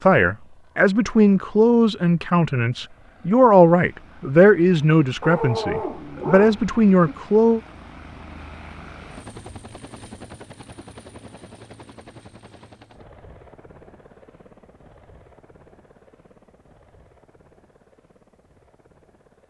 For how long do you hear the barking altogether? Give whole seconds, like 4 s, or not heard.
2 s.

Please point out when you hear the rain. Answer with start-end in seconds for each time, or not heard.
not heard.